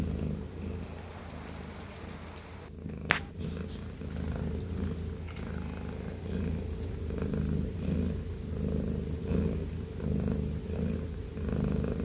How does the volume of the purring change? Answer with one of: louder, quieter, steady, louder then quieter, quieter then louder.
louder.